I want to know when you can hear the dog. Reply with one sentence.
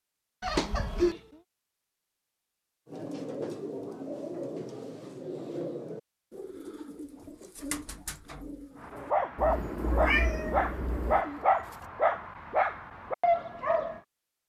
The dog can be heard from 8.8 to 14.0 s.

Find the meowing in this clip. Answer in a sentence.
The meowing can be heard from 0.4 to 1.2 s and from 9.3 to 11.2 s.